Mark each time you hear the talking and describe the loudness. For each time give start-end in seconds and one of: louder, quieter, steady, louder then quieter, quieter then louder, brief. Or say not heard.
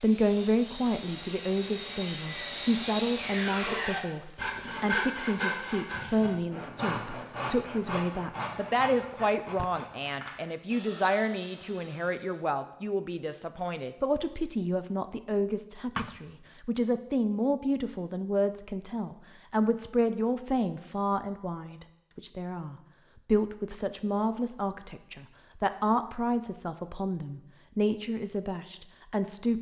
0.0-29.5 steady.